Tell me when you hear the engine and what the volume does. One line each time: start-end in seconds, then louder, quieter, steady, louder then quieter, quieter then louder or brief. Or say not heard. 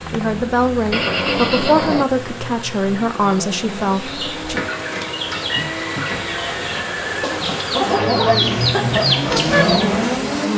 0.0-10.5 louder.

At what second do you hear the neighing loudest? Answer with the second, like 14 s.
1 s.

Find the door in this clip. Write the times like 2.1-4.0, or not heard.
not heard.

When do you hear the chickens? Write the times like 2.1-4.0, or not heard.
3.9-9.9.